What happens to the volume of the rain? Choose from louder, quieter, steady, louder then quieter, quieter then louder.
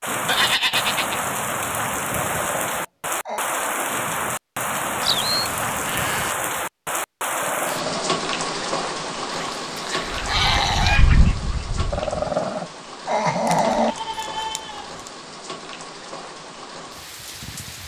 quieter.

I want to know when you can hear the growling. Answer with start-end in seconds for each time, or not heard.
2.3-3.5, 7.4-8.2, 11.9-13.9.